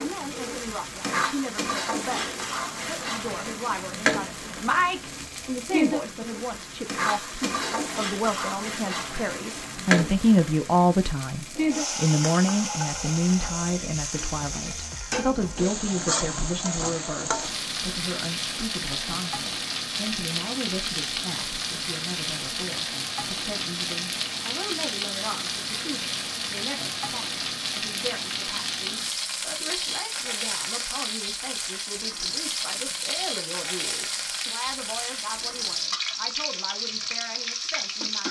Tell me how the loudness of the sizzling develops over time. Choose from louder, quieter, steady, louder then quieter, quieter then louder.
steady.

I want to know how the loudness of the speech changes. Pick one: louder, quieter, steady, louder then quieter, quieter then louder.
louder then quieter.